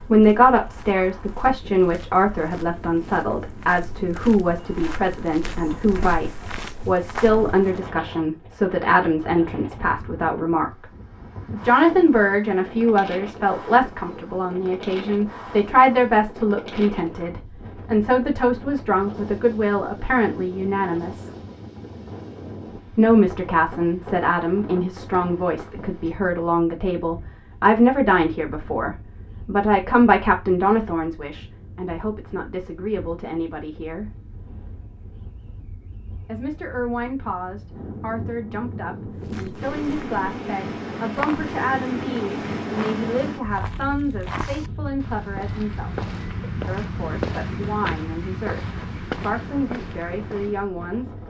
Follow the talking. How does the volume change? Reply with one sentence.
The volume of the talking goes down.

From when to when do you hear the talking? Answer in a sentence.
You can hear the talking from 0.1 to 10.8 s, from 11.5 to 21.3 s, from 22.9 to 34.1 s, from 36.2 to 45.9 s and from 46.6 to 51.1 s.